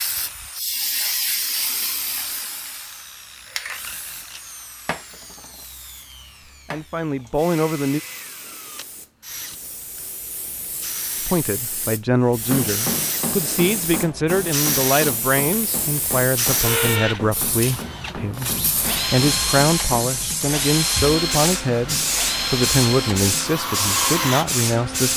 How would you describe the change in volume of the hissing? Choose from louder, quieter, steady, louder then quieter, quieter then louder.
quieter then louder.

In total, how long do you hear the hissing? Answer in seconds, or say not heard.
25 s.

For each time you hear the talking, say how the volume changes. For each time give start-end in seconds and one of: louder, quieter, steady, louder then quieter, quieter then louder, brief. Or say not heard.
6.5-8.0 brief
11.2-25.1 steady.